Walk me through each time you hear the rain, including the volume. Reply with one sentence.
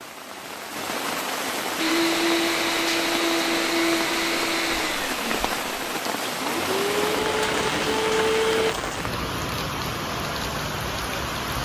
You can hear the rain from 0.0 to 11.5 s, at a steady volume.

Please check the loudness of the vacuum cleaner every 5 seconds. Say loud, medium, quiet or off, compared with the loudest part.
loud, loud, off.